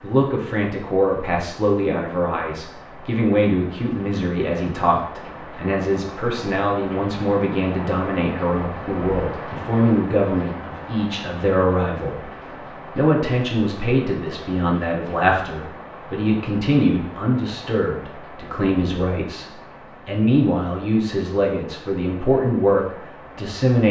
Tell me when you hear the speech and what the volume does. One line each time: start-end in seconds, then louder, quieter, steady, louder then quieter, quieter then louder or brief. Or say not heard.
0.0-23.8 steady.